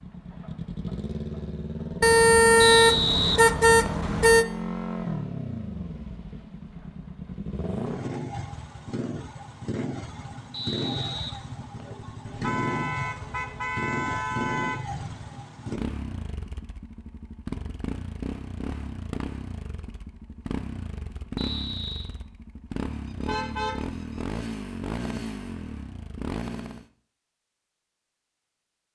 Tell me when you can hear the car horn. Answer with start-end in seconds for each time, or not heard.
2.0-4.5, 12.2-14.8, 23.1-24.2.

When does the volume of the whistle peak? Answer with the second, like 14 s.
3 s.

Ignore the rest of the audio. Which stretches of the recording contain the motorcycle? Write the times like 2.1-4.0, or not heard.
0.0-26.9.